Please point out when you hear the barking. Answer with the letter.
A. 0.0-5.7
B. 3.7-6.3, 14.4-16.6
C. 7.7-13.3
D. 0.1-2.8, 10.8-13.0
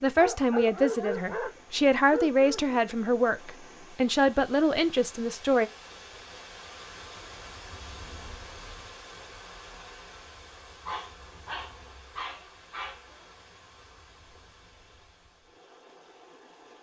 D.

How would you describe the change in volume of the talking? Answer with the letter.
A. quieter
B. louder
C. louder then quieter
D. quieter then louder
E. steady
E.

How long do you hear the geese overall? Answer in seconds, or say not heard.
not heard.